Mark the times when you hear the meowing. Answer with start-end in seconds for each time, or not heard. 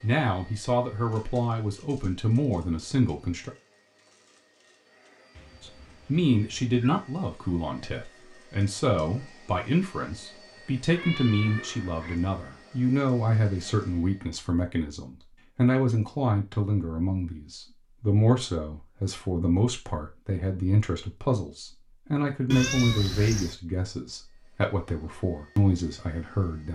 5.3-7.0, 10.9-12.2, 22.5-23.6.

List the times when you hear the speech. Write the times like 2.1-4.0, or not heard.
0.0-3.5, 5.6-26.7.